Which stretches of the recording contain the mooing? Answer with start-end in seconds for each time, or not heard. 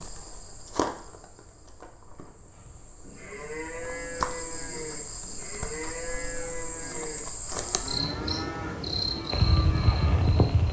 2.5-10.4.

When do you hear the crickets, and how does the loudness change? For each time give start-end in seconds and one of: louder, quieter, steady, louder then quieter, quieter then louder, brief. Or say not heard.
0.0-10.6 louder.